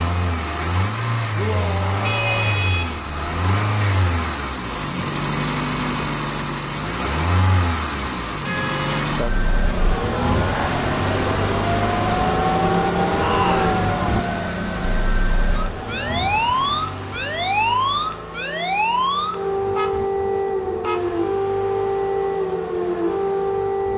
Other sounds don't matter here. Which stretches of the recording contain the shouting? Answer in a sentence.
You can hear the shouting from 1.4 to 2.6 s and from 13.2 to 13.8 s.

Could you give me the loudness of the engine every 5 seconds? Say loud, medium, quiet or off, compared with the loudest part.
loud, loud, loud, medium, quiet.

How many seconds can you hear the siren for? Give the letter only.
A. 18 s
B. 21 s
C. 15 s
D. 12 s
C.